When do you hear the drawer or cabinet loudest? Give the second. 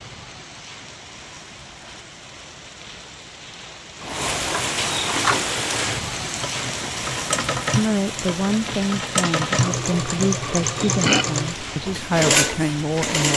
5 s.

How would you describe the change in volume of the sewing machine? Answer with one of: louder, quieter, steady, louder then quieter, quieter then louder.
louder.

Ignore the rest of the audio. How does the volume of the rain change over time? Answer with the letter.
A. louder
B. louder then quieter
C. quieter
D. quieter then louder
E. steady
B.